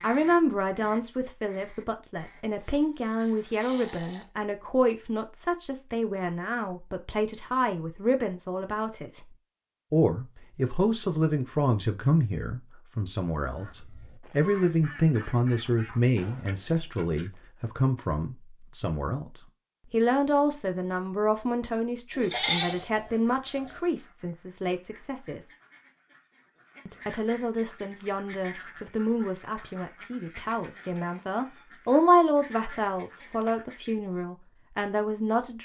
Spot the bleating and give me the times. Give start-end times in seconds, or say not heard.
2.5-4.2, 22.1-23.8.